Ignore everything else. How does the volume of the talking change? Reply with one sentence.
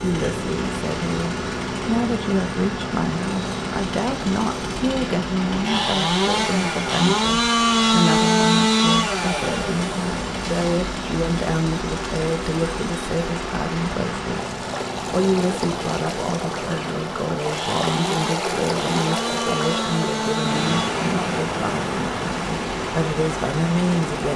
The loudness of the talking stays about the same.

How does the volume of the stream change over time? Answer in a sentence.
The loudness of the stream goes up.